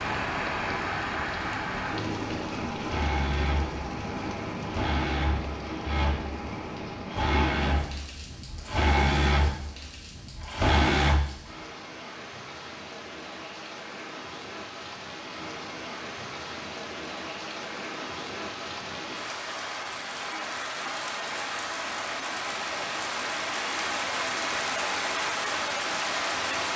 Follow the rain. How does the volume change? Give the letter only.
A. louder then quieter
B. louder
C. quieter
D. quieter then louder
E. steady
D.